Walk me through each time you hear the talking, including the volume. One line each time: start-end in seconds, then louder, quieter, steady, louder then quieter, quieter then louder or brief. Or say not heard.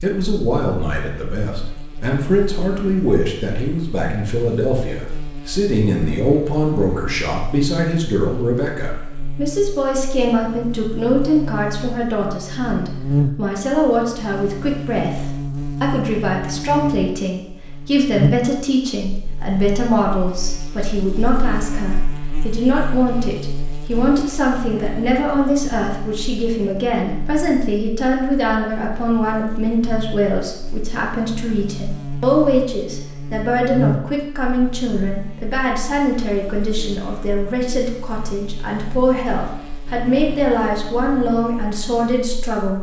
0.0-42.7 steady.